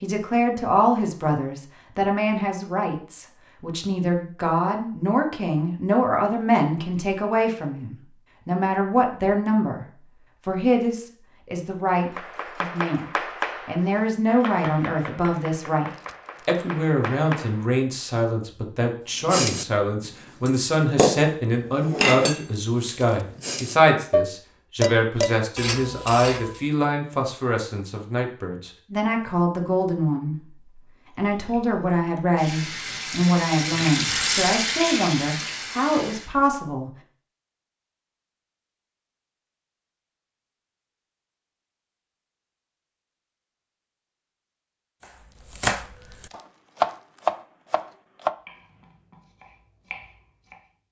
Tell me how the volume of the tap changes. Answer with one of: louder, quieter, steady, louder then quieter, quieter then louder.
louder then quieter.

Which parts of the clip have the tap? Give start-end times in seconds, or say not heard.
31.1-36.3.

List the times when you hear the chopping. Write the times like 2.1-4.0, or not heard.
11.9-17.6, 45.0-50.7.